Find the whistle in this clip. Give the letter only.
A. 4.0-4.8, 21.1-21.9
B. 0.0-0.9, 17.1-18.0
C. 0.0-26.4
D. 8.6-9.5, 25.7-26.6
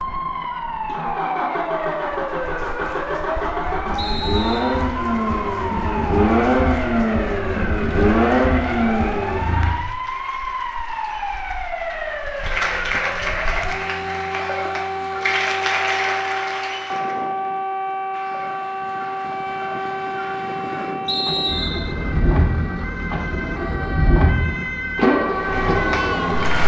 A.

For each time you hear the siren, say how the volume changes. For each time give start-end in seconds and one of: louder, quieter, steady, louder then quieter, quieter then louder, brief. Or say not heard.
0.0-26.4 steady.